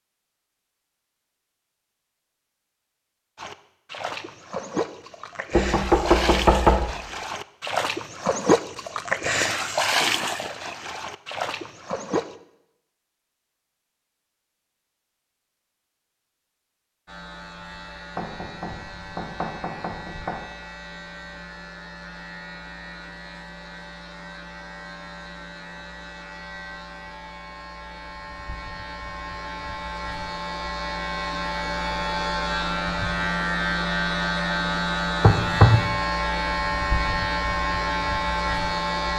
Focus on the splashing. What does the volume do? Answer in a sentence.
The volume of the splashing goes up, then down.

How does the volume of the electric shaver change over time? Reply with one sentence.
The volume of the electric shaver goes up.